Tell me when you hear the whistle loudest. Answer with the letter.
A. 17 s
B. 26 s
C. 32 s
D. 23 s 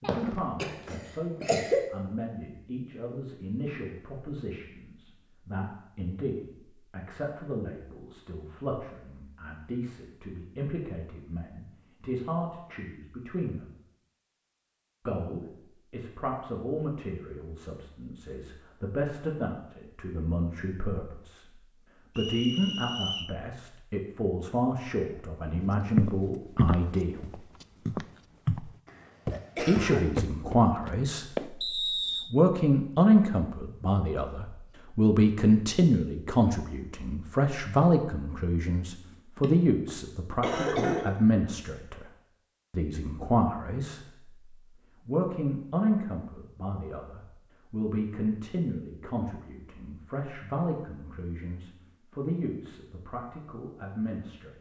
C.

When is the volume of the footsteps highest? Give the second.
26 s.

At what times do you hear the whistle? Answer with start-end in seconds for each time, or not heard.
22.1-23.4, 31.6-32.3.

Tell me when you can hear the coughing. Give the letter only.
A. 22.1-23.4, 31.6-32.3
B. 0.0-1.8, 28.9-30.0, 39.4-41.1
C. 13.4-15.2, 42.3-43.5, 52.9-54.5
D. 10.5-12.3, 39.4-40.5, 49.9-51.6
B.